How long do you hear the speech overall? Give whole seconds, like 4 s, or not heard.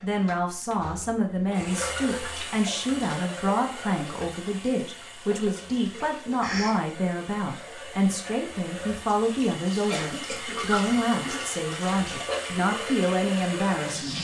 14 s.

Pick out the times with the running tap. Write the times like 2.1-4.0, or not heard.
0.0-14.1.